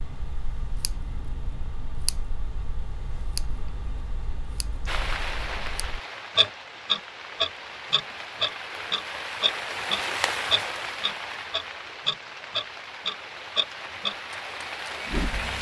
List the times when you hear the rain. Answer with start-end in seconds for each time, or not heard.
4.8-15.5.